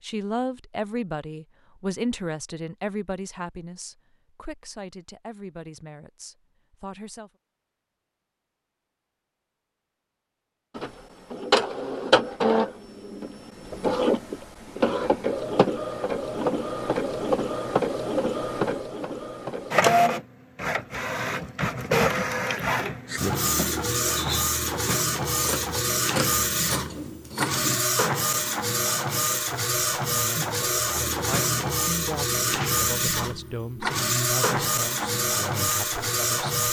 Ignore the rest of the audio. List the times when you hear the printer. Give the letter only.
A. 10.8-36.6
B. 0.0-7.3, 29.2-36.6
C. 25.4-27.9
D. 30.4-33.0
A.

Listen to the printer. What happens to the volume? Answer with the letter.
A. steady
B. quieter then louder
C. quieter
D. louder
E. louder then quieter
A.